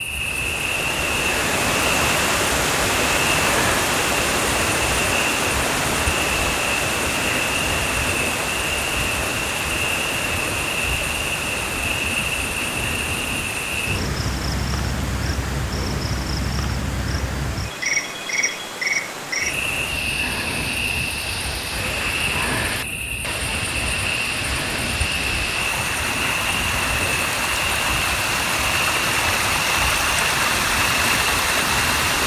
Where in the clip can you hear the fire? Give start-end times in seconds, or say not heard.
not heard.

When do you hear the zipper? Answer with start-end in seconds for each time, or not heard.
not heard.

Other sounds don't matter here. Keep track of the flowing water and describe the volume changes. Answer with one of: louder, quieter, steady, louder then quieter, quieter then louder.
quieter then louder.